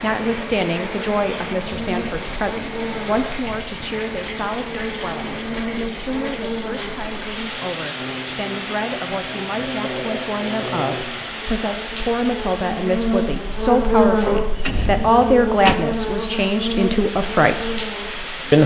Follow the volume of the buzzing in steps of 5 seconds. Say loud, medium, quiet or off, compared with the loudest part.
medium, medium, loud, loud.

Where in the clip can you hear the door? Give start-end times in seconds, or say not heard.
14.2-15.8.